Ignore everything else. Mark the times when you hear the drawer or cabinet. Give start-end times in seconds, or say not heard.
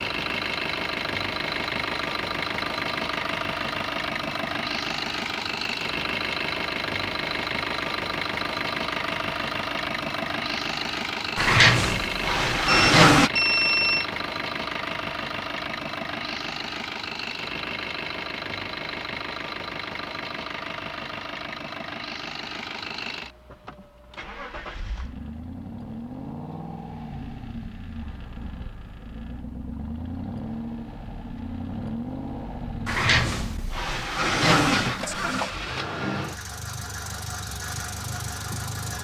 11.3-13.3, 32.9-35.5.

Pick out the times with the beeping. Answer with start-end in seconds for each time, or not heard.
12.7-14.1.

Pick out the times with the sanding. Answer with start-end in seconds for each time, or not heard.
not heard.